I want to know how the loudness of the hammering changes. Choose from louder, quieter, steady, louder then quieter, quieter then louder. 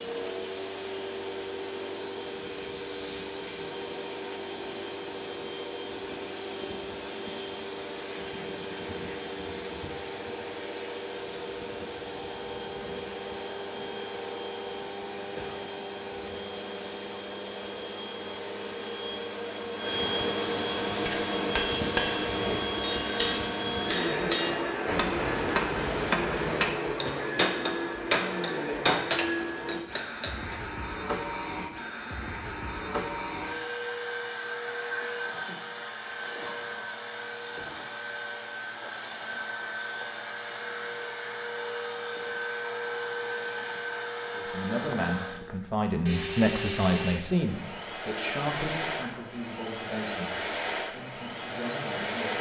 louder.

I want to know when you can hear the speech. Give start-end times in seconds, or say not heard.
44.4-52.3.